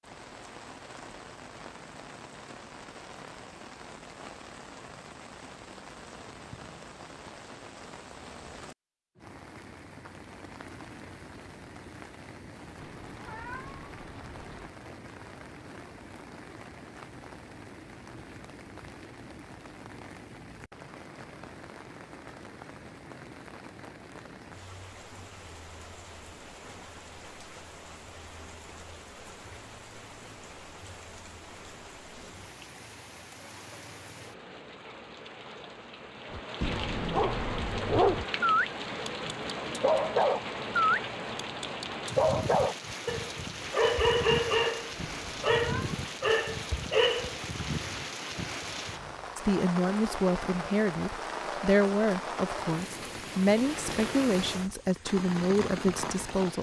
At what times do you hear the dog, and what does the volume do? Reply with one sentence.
You can hear the dog from 36.4 to 47.4 s, at a steady volume.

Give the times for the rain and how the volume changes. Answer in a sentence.
The rain can be heard from 0.0 to 56.5 s, getting louder.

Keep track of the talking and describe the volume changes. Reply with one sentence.
The loudness of the talking stays about the same.